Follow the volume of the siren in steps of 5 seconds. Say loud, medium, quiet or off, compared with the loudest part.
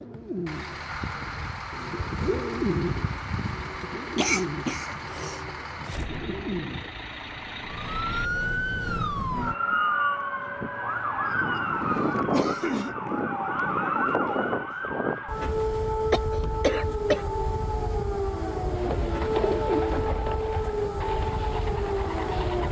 off, loud, loud, loud, loud.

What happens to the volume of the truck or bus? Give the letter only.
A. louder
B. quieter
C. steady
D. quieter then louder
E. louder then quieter
C.